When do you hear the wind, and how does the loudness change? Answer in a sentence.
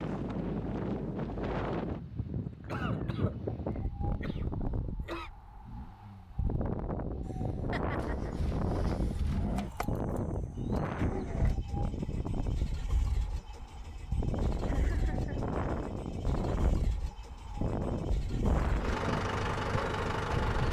The wind can be heard from 0.0 to 20.6 s, at a steady volume.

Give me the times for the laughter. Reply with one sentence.
You can hear the laughter from 2.6 to 5.3 s, from 7.7 to 8.3 s and from 14.7 to 15.4 s.